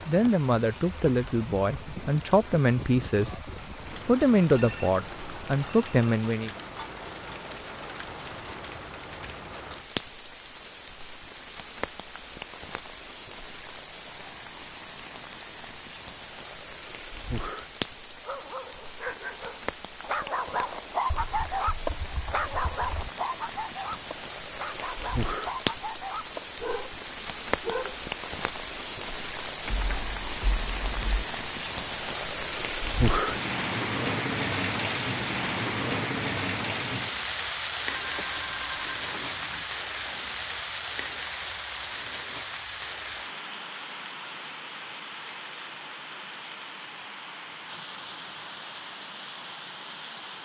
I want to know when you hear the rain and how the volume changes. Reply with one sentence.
You can hear the rain from 0.0 to 50.4 s, getting louder then quieter.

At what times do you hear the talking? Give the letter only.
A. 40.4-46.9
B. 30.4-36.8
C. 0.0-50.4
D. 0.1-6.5
D.